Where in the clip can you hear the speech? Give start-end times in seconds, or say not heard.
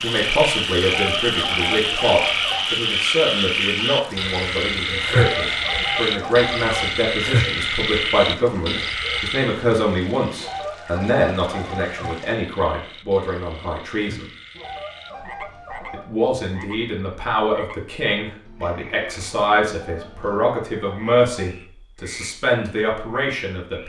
0.0-14.3, 15.9-23.8.